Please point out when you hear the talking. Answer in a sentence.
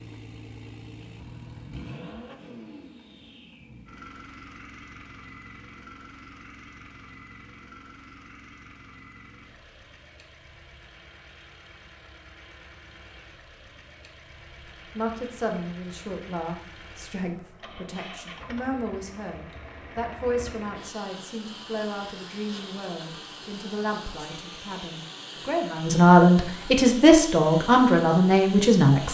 You can hear the talking from 14.9 to 29.1 s.